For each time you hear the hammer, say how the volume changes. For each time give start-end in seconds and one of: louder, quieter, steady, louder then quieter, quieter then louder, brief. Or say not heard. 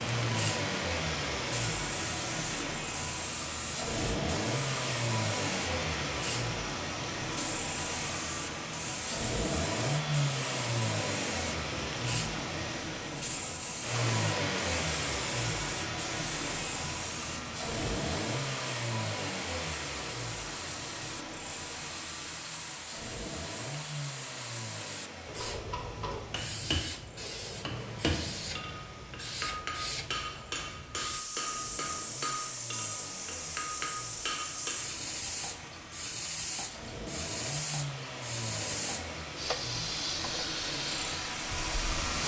25.3-34.9 steady.